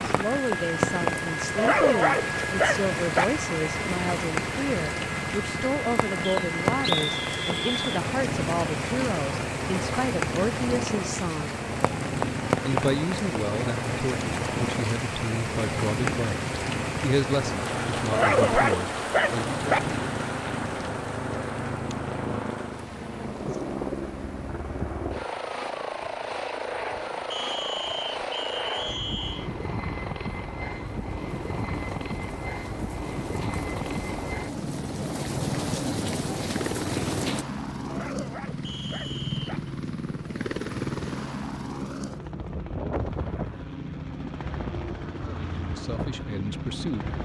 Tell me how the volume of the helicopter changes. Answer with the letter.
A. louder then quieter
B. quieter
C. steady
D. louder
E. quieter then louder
C.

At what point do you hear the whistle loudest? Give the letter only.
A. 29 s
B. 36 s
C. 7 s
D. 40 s
C.